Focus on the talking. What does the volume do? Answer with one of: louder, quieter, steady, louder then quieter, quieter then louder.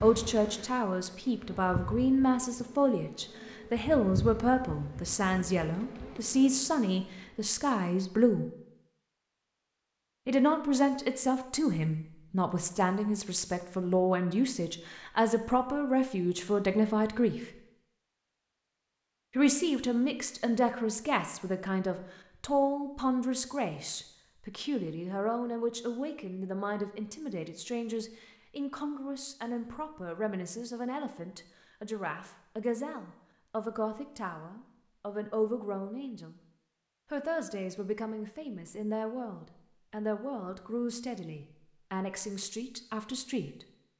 quieter.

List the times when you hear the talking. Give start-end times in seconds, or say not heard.
0.0-8.4, 10.2-17.6, 19.4-36.4, 37.1-43.6.